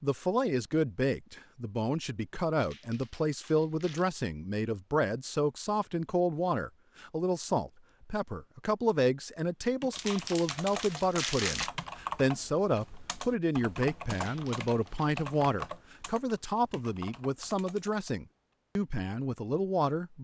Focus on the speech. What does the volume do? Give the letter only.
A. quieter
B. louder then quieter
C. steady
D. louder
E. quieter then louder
C.